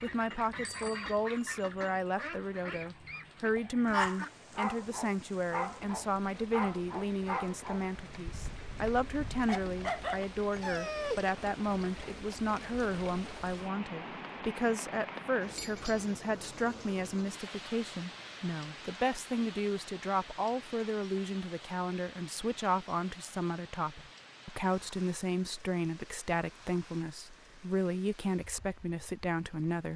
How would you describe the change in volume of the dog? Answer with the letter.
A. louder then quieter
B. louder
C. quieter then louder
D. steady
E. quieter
C.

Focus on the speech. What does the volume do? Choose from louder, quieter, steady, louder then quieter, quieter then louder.
steady.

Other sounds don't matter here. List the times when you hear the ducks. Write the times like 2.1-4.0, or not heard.
0.0-4.3.